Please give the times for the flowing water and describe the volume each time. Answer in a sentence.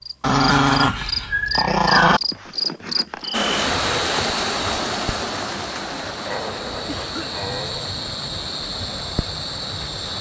The flowing water can be heard from 3.3 to 10.1 s, getting quieter.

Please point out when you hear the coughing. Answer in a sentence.
The coughing can be heard from 2.0 to 3.4 s and from 6.8 to 7.4 s.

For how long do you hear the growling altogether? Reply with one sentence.
The growling can be heard for 4 seconds in total.